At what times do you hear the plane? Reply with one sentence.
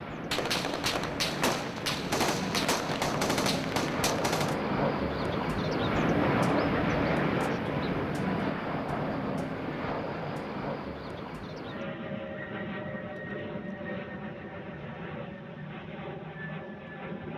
You can hear the plane from 0.0 to 17.3 s.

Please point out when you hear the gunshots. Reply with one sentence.
You can hear the gunshots from 0.3 to 4.5 s.